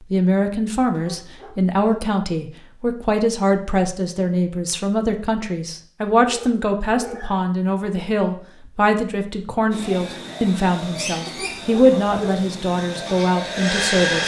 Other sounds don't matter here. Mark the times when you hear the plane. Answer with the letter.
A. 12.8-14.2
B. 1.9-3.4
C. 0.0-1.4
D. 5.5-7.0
A.